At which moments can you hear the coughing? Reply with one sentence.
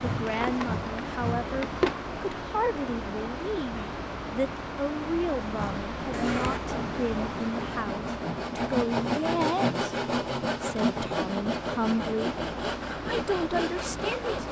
The coughing can be heard from 6.1 to 6.6 s.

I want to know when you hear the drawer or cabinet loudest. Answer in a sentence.
The volume of the drawer or cabinet peaks at 2 seconds.